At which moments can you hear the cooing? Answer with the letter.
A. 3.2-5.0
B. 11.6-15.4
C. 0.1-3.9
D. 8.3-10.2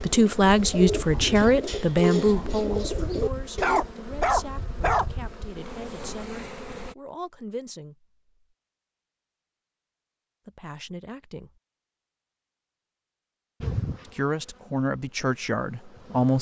C.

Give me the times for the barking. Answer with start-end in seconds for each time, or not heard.
3.2-5.0.